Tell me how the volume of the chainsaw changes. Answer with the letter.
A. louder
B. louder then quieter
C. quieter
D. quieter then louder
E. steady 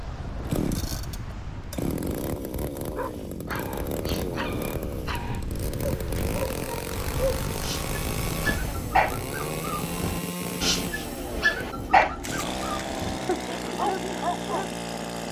E.